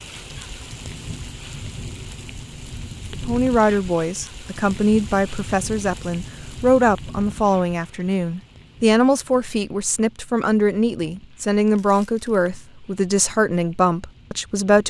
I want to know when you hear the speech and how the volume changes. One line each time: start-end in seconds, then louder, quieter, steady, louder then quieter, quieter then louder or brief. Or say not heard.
3.1-14.8 steady.